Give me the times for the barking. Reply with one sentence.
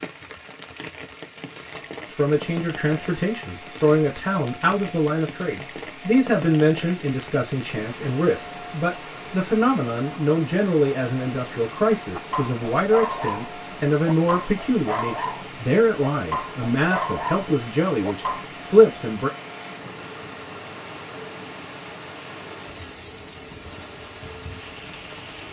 The barking can be heard from 12.2 to 18.4 s.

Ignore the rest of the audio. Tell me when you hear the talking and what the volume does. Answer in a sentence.
You can hear the talking from 2.0 to 19.3 s, at a steady volume.